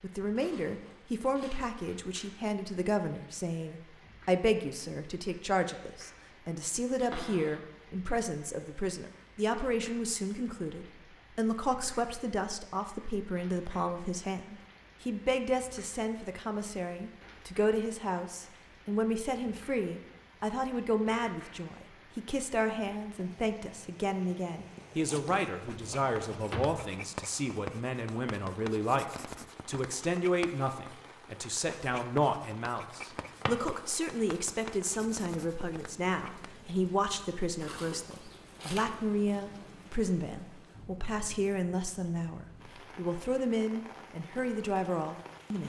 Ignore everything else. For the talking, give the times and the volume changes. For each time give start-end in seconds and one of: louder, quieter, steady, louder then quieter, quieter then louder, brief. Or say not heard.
0.0-45.6 steady.